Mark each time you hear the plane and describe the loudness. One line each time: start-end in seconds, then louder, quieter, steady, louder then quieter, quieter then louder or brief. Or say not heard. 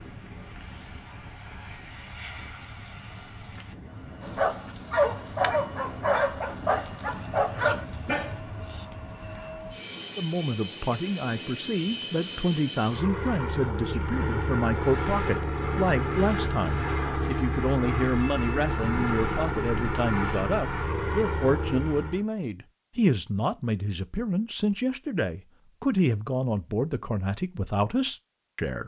0.0-22.2 louder.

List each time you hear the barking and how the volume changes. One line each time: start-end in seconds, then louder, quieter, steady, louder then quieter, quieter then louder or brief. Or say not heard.
4.2-8.8 steady.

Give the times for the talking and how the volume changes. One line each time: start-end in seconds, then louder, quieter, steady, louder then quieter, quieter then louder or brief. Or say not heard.
10.2-28.8 steady.